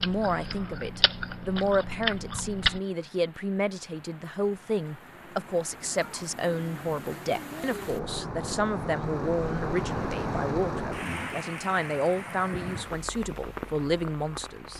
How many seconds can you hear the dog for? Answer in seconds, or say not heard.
not heard.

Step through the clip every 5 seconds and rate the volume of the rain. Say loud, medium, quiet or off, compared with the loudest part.
quiet, loud, loud.